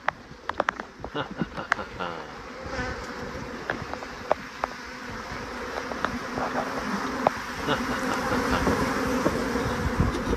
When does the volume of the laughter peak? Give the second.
8 s.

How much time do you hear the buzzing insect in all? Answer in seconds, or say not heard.
10 s.